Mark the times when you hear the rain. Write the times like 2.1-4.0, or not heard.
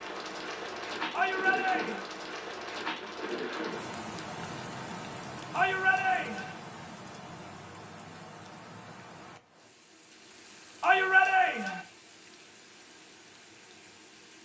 0.0-14.4.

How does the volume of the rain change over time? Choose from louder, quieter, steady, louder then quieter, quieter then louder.
quieter.